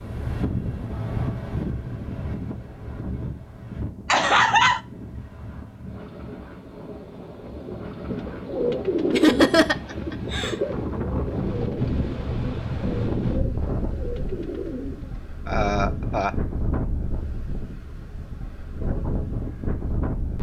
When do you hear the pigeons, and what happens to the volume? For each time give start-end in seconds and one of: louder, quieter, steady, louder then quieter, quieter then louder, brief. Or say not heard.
8.1-15.2 quieter.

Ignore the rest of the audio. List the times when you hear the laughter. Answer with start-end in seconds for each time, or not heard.
4.1-4.8, 9.1-10.6, 15.4-16.3.